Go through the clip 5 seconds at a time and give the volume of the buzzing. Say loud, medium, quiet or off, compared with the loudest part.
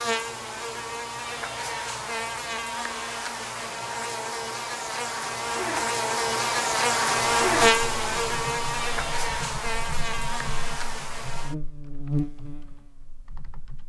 medium, loud, medium.